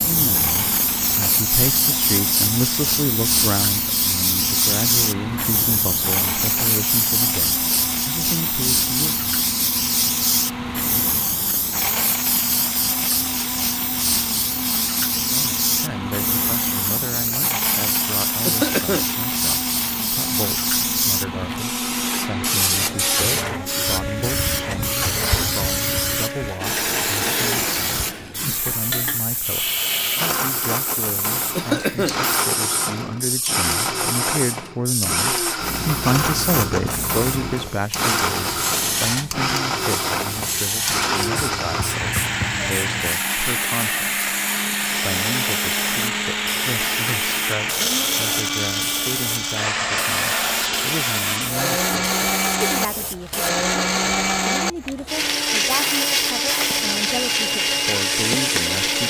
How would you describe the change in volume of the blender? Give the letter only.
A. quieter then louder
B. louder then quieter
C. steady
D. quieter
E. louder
E.